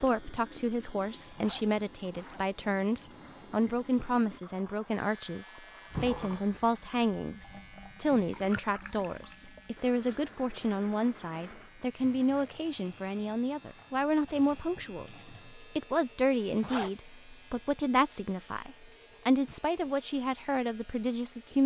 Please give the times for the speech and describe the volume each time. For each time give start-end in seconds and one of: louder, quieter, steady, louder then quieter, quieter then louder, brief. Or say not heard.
0.0-21.6 steady.